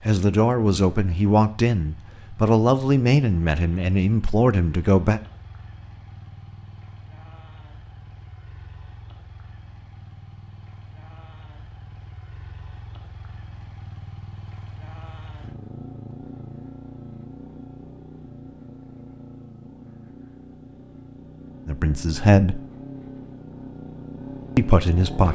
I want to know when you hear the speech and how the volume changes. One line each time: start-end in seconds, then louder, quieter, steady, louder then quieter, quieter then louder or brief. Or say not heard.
0.1-5.2 steady
21.6-22.6 brief
24.6-25.3 brief.